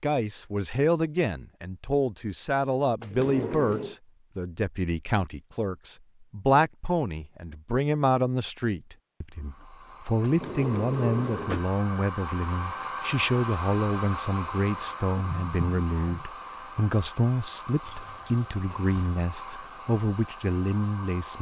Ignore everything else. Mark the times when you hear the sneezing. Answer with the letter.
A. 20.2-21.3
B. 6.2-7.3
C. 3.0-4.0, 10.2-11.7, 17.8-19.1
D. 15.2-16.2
D.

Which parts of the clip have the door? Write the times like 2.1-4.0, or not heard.
3.0-4.0, 10.2-11.7, 17.8-19.1.